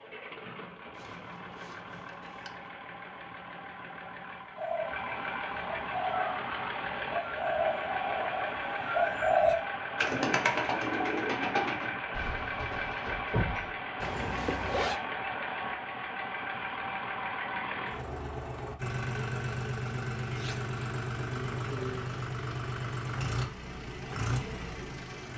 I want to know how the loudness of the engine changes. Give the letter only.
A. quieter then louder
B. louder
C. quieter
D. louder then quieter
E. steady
B.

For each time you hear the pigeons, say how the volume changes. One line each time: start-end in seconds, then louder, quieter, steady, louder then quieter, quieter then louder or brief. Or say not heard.
4.5-13.7 louder then quieter.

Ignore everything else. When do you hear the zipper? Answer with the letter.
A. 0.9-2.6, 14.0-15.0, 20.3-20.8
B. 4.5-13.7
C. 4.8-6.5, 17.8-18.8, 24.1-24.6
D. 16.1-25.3
A.